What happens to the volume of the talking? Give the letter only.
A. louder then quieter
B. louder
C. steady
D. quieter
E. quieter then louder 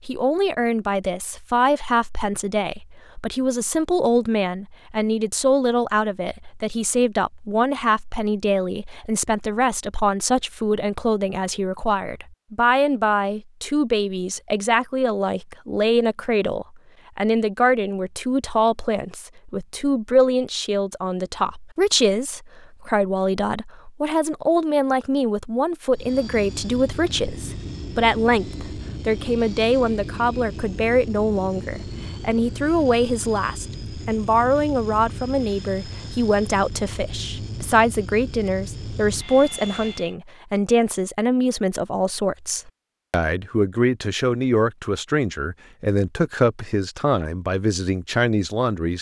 C.